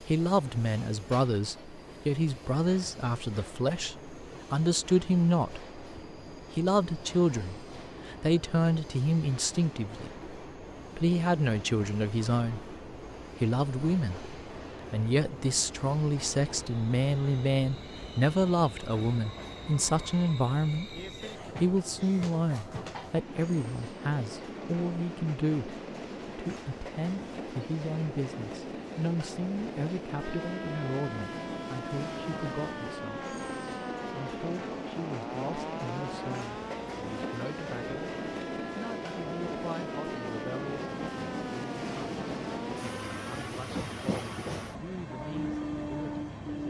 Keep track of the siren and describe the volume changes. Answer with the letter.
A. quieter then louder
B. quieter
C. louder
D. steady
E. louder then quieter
D.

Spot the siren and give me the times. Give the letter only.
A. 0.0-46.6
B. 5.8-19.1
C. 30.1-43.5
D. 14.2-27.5
C.